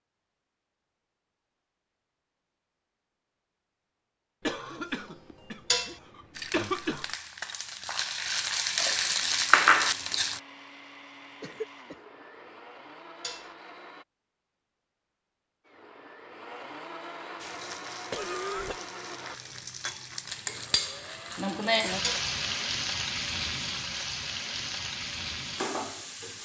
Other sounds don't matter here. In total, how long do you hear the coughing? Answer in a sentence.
The coughing can be heard for 4 seconds in total.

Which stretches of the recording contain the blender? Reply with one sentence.
The blender can be heard from 9.2 to 14.1 s and from 15.7 to 22.4 s.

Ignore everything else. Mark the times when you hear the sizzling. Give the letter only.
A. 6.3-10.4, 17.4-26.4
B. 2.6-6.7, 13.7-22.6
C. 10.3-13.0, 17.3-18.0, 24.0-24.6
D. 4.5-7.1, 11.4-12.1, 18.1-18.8
A.